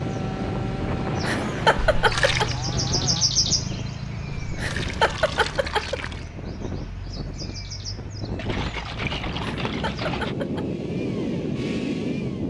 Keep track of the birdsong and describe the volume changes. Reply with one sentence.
The volume of the birdsong goes up, then down.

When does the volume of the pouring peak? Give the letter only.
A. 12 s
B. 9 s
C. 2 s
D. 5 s
C.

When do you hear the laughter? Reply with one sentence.
The laughter can be heard from 1.2 to 2.5 s, from 4.5 to 6.0 s and from 9.7 to 10.7 s.